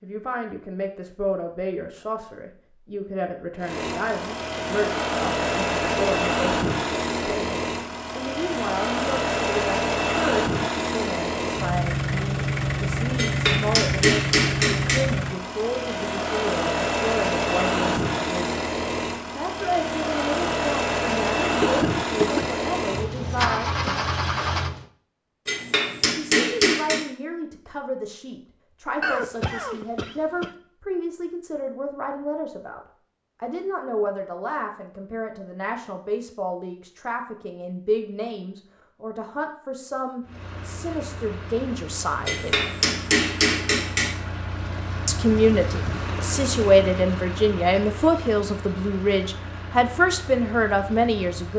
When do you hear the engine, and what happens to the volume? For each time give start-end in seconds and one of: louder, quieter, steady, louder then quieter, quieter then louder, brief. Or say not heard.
3.6-24.9 steady
40.2-51.5 louder then quieter.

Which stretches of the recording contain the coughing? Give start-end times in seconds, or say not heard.
21.6-22.6, 29.0-30.5.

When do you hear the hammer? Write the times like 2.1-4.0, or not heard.
13.2-15.1, 25.4-27.1, 42.2-44.1.